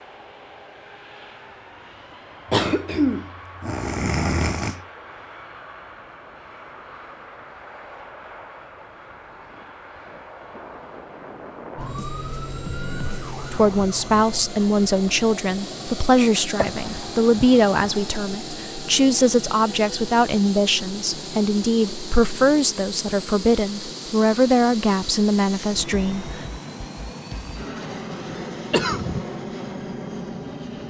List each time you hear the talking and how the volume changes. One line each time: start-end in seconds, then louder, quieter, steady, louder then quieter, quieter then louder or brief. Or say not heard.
13.5-26.4 steady.